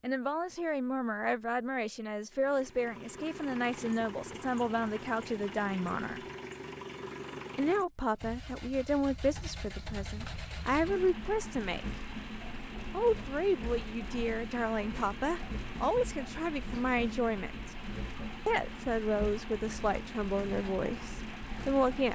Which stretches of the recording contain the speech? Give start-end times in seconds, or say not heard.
0.0-6.3, 7.5-11.8, 12.9-17.7, 18.4-22.1.